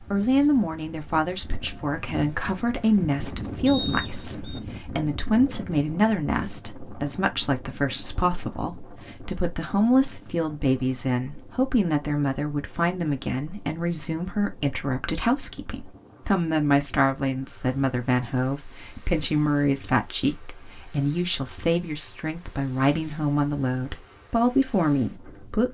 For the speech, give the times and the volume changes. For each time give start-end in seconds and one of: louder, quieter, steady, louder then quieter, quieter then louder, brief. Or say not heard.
0.1-25.6 steady.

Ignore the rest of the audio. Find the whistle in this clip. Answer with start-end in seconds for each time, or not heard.
3.6-4.6.